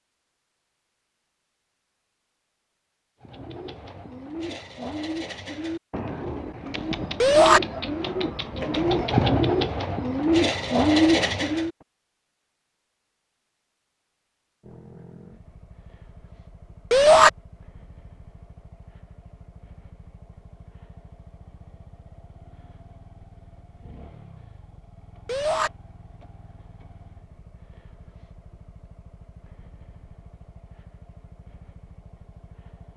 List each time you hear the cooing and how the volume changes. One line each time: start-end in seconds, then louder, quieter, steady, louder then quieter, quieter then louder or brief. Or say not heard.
3.2-11.7 louder.